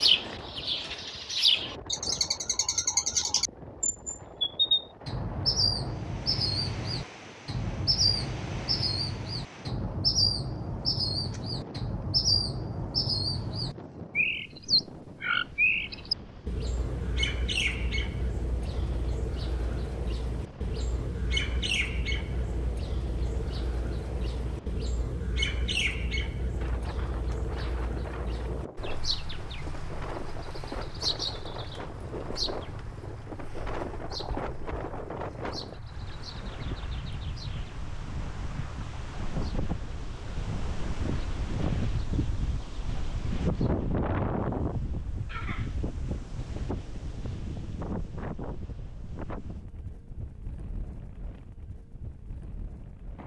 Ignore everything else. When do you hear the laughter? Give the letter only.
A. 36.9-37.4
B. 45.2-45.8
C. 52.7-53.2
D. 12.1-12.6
B.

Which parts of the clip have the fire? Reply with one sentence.
The fire can't be heard in this clip.